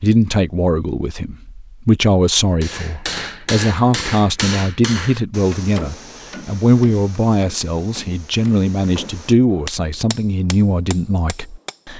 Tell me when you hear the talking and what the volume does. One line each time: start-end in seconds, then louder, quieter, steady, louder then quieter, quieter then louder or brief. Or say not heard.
0.0-11.9 steady.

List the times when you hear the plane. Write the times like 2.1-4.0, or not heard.
not heard.